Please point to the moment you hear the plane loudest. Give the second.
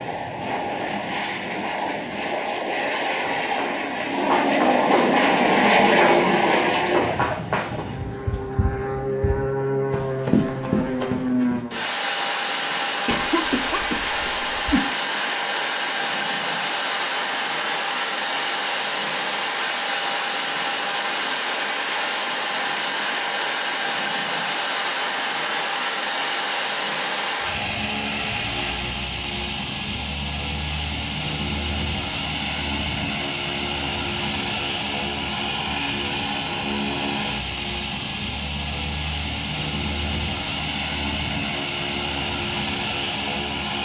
6 s.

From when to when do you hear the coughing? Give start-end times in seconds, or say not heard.
13.1-14.8.